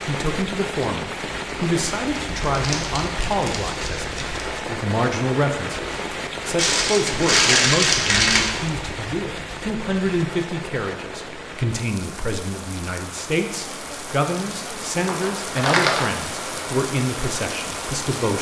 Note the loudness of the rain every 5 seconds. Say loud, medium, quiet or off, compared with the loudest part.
loud, loud, medium, loud.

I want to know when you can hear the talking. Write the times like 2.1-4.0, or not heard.
0.1-18.3.